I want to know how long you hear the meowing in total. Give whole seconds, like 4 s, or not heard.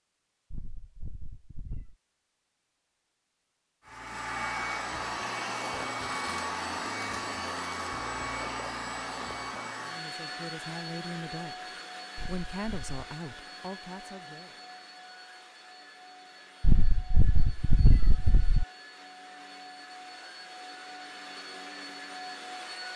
4 s.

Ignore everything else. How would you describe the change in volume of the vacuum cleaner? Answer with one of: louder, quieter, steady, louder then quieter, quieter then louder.
quieter then louder.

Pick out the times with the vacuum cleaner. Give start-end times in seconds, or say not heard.
3.9-22.9.